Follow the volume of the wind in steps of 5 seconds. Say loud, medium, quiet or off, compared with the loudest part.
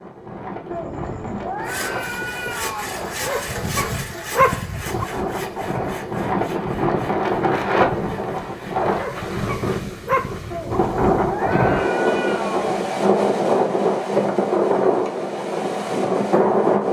quiet, loud, loud, loud.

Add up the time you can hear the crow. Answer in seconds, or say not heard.
not heard.